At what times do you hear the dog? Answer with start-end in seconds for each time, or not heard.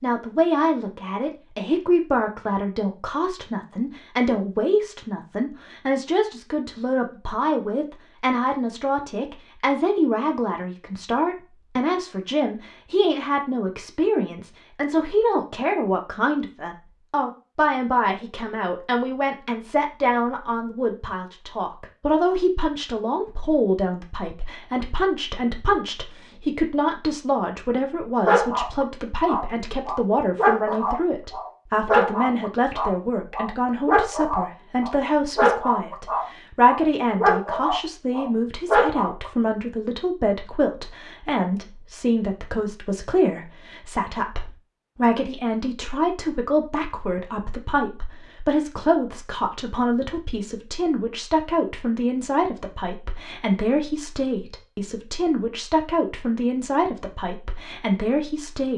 28.2-39.3.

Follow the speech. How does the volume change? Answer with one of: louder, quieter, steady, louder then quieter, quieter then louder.
steady.